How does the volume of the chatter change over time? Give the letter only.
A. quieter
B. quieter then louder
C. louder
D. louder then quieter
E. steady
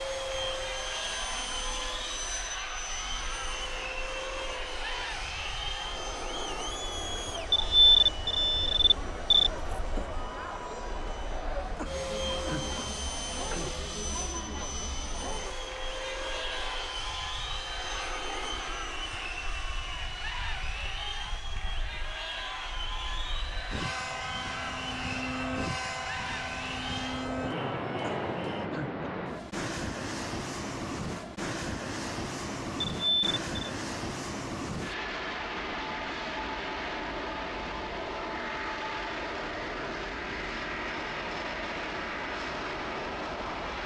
E.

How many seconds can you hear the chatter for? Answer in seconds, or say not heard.
29 s.